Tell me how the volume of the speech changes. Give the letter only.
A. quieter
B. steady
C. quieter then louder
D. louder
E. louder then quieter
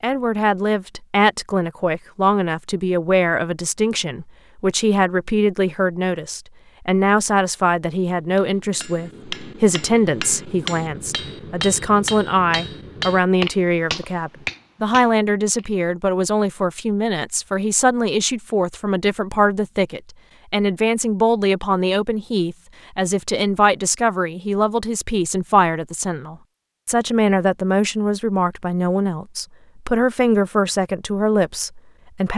B.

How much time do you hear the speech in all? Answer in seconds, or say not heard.
32 s.